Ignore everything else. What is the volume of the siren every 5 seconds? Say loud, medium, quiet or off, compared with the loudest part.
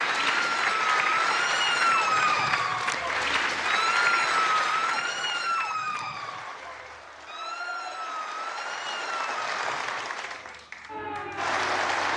loud, medium, medium.